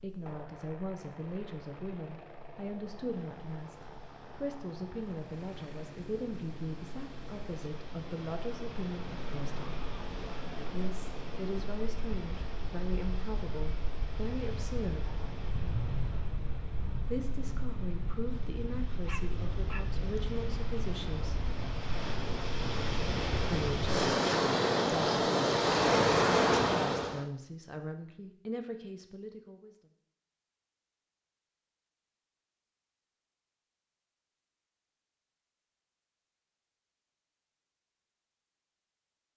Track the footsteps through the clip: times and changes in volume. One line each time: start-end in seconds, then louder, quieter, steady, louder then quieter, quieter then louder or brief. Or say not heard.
not heard.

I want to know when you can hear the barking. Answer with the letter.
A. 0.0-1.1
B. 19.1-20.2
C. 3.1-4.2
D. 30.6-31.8
B.